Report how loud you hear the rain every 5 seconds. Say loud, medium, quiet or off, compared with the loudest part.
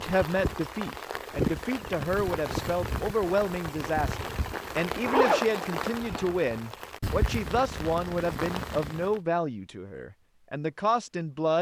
loud, loud, off.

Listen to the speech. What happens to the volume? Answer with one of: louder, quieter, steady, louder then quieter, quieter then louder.
steady.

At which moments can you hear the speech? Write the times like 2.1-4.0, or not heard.
0.0-11.5.